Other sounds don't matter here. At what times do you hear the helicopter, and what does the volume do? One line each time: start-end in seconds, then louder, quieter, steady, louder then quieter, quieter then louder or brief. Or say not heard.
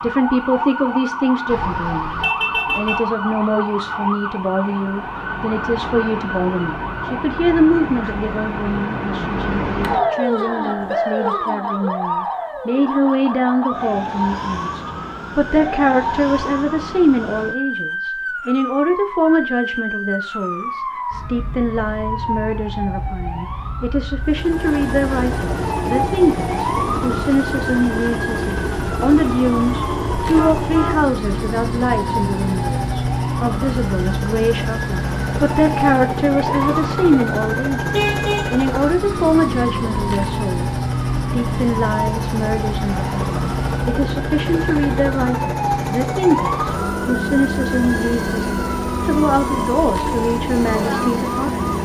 24.2-51.7 steady.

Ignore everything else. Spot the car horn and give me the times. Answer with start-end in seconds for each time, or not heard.
1.4-3.0, 30.2-31.0, 37.9-38.5.